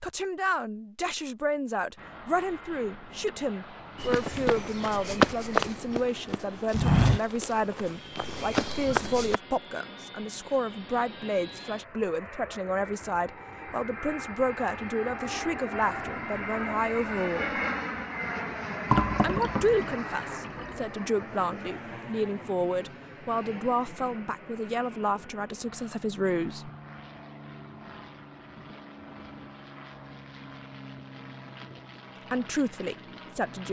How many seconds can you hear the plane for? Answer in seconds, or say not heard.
32 s.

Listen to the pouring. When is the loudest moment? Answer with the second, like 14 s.
19 s.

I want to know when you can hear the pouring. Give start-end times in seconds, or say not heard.
18.9-20.8.